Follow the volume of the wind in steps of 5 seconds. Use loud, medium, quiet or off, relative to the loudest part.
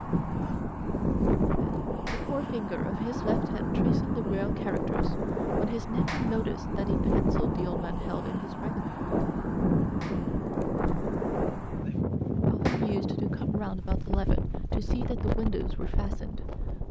loud, loud, loud, medium.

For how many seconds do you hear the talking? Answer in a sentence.
You can hear the talking for 12 seconds altogether.